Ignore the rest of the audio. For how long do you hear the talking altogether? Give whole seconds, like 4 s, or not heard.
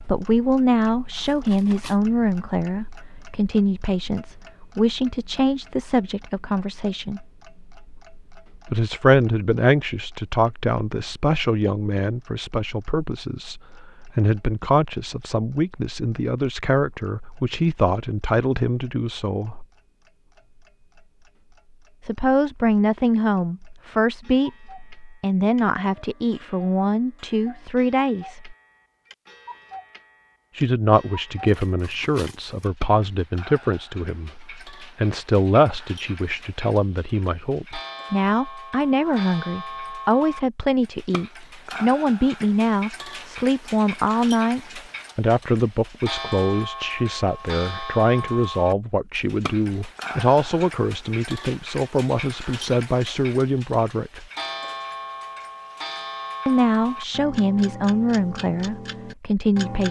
52 s.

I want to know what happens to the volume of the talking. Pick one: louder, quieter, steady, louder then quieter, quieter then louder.
steady.